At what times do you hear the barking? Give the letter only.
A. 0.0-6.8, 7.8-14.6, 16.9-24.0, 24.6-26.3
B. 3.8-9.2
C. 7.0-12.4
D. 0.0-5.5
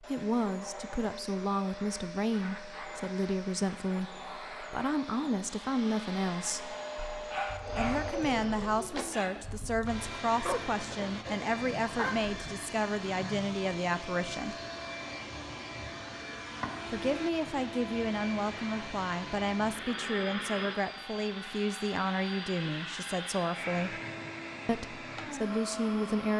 C.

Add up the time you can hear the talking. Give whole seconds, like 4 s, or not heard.
22 s.